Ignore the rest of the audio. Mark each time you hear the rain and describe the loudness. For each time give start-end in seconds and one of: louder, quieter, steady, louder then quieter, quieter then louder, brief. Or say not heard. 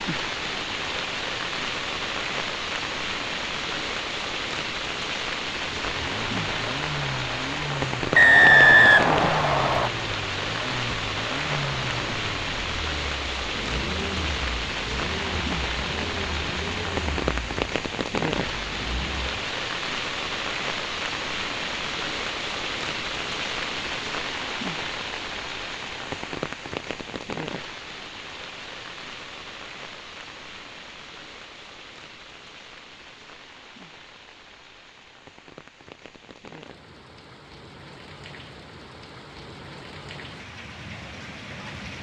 0.0-41.9 quieter.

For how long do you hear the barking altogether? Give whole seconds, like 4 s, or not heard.
not heard.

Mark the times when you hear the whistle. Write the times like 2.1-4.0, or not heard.
8.2-9.9.